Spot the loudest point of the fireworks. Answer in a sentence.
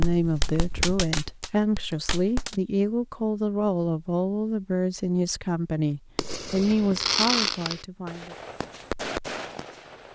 The volume of the fireworks peaks at 7 seconds.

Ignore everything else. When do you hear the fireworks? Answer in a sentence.
You can hear the fireworks from 0.0 to 2.5 s and from 6.2 to 10.1 s.